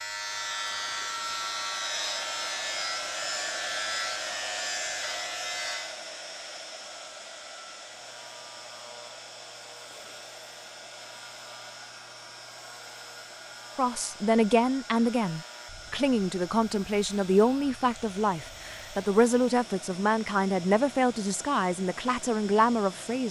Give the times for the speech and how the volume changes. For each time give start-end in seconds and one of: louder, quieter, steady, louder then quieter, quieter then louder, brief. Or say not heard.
13.8-23.2 steady.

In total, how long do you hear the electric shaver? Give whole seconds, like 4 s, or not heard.
23 s.